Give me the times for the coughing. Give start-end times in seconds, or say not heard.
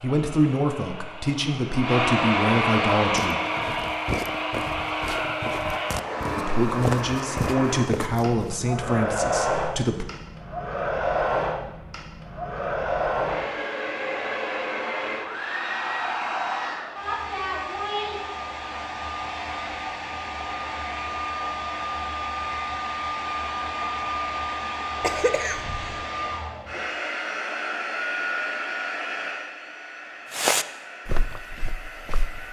25.0-26.1.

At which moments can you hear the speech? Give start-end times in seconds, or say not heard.
0.0-3.4, 6.3-10.1.